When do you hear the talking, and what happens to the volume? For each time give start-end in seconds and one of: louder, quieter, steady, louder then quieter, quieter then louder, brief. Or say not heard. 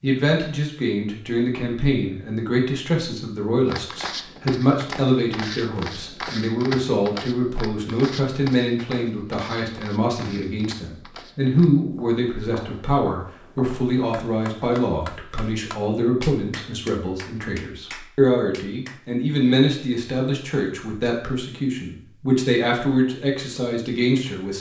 0.0-24.5 steady.